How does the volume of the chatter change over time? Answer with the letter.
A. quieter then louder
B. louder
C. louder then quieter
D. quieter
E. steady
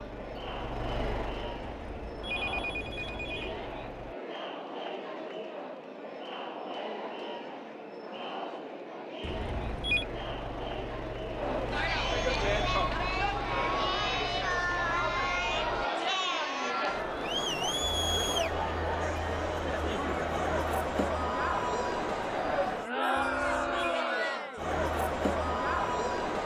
B.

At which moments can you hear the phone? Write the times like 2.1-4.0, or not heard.
1.6-3.6, 9.2-10.1, 23.1-24.0.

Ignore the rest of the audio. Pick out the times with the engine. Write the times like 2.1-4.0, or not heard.
0.0-4.2, 9.2-15.9.